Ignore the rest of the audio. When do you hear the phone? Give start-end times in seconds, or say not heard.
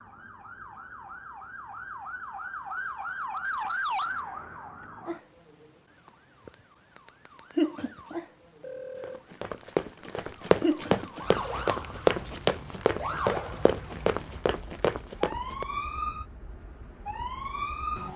8.6-9.2.